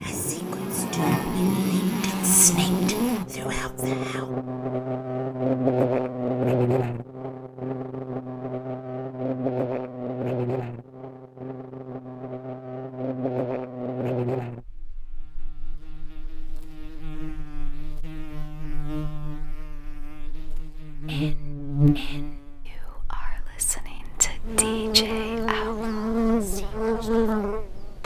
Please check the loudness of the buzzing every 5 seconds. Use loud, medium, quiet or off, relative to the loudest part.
loud, loud, medium, quiet, loud, loud.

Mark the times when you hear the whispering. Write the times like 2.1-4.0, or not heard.
0.0-4.3, 21.1-27.6.